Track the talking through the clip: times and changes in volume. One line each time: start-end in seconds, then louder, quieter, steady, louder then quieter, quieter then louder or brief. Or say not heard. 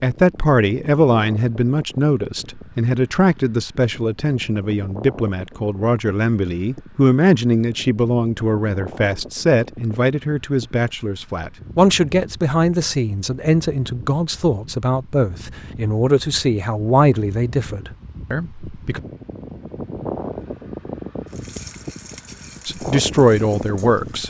0.0-19.0 steady
22.6-24.2 brief.